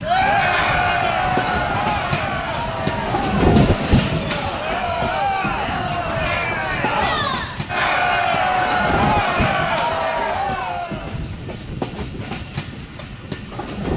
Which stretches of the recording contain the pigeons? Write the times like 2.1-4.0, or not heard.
not heard.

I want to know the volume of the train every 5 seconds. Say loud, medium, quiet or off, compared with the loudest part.
loud, medium, medium.